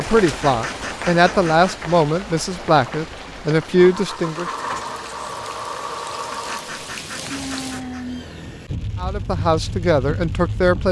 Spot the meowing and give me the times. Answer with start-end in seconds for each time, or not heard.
7.3-8.5.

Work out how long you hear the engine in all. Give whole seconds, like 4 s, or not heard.
4 s.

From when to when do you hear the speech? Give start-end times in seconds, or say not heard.
0.0-4.5, 9.0-10.8.